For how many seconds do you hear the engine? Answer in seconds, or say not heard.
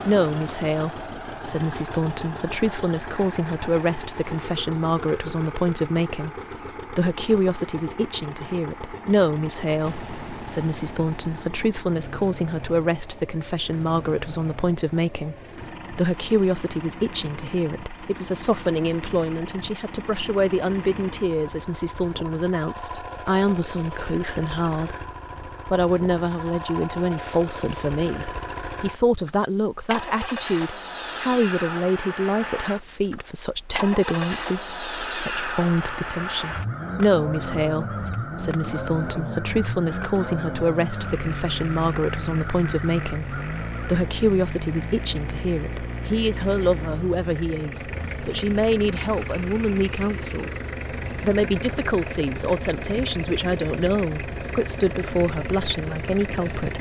57 s.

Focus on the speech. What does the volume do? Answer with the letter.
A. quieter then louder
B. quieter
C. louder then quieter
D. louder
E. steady
E.